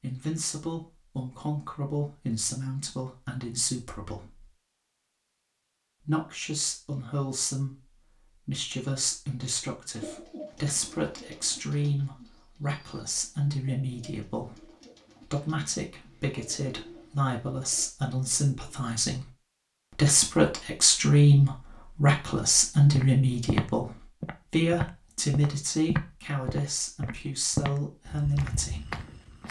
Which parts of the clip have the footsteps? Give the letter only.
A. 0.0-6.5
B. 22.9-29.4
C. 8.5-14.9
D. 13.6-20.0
B.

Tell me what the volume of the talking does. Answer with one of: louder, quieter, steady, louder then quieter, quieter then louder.
louder then quieter.